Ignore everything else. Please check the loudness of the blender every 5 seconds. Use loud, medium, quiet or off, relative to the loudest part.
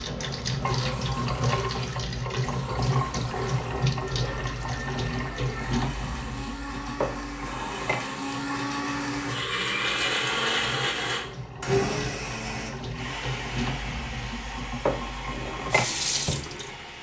medium, loud, loud, medium.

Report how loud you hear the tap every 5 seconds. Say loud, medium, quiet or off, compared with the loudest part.
loud, medium, medium, loud.